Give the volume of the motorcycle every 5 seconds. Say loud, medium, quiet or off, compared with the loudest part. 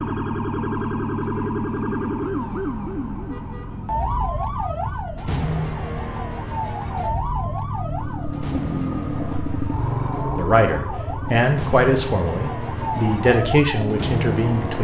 medium, loud, loud.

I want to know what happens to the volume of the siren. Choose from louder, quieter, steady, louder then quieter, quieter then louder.
quieter then louder.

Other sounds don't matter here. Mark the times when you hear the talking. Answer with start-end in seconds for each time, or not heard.
10.3-14.7.